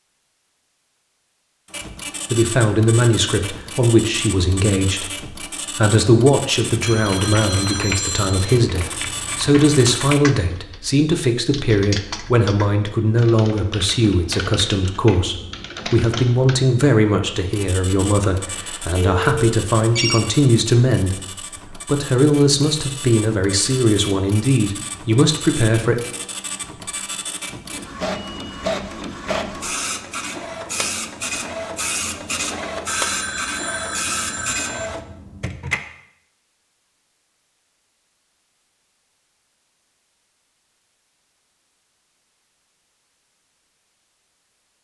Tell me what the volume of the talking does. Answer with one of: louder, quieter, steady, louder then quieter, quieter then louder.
steady.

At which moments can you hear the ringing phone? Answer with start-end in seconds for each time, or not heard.
6.8-8.6, 18.6-20.2, 32.9-34.9.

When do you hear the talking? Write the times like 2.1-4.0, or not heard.
2.3-25.9.